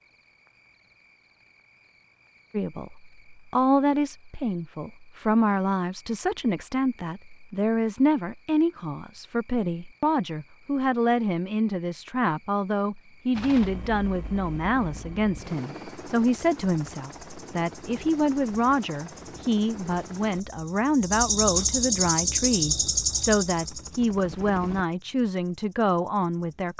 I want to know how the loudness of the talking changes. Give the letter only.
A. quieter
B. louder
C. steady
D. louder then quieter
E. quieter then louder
C.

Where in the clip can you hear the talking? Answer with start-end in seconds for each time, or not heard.
2.5-26.7.